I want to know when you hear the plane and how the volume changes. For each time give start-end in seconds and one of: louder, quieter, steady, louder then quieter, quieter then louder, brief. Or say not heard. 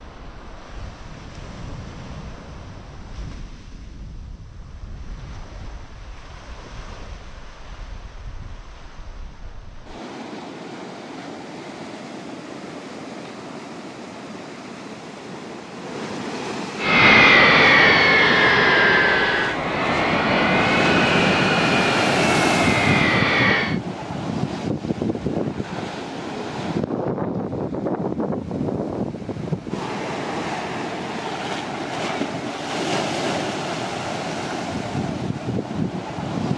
16.8-23.8 quieter.